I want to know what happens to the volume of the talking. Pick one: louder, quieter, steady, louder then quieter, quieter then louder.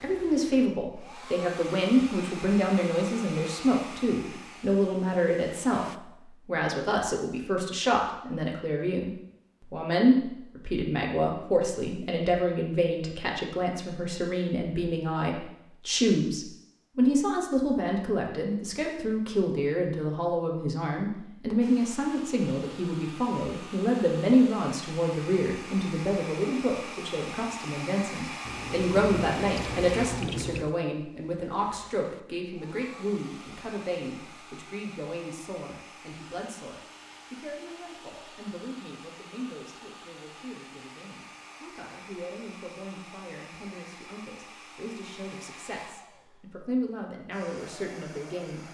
quieter.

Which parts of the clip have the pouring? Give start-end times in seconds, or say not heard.
28.4-30.8.